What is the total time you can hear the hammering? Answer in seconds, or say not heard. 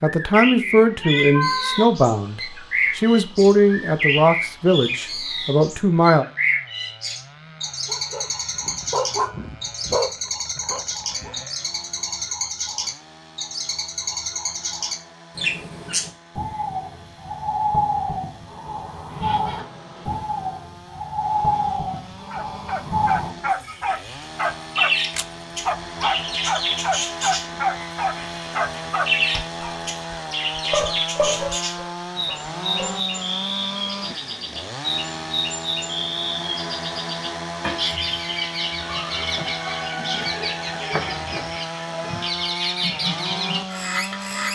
not heard.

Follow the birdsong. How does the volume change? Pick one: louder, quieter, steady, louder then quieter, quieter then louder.
steady.